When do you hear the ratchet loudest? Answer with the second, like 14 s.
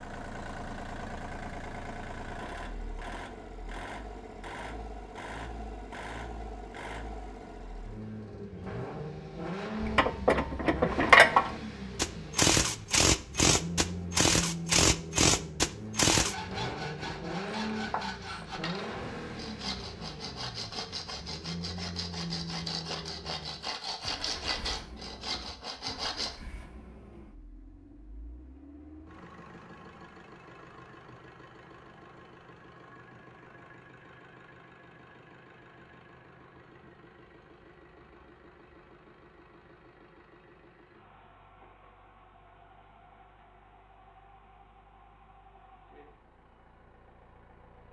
11 s.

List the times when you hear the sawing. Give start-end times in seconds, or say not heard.
16.1-26.4.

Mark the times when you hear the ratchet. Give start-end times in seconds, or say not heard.
9.8-18.6.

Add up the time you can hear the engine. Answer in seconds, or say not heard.
48 s.